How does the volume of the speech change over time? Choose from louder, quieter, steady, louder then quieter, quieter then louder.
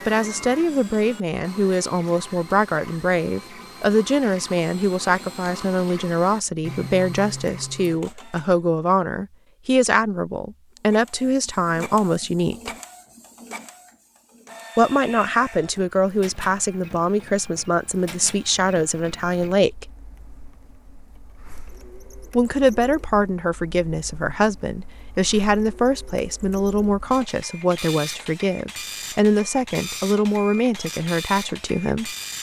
steady.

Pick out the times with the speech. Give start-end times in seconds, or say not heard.
0.1-12.7, 14.8-19.9, 22.3-32.1.